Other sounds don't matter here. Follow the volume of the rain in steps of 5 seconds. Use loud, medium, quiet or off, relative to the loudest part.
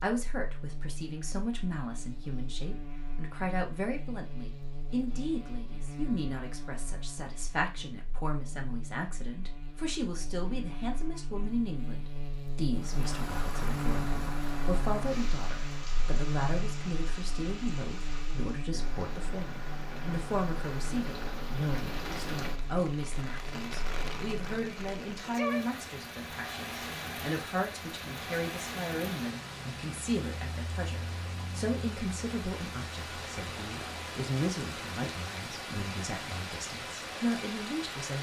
off, off, loud, medium, loud, loud, loud, loud.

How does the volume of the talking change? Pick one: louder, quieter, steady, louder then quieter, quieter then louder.
steady.